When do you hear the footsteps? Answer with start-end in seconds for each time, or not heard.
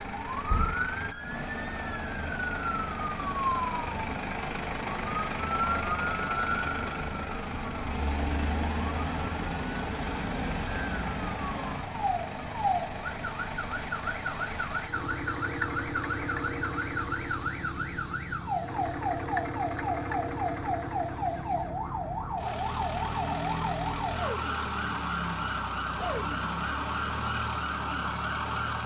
not heard.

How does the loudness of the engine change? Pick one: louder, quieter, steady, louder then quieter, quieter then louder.
steady.